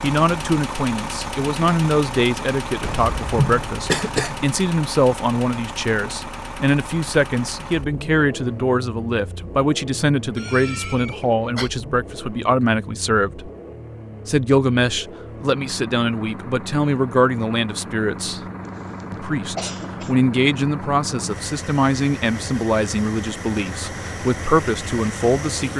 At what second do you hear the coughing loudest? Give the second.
4 s.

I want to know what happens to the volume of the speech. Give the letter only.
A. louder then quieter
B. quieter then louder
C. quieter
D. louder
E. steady
E.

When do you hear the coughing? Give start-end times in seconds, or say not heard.
2.8-4.5, 10.3-11.7, 19.0-20.1.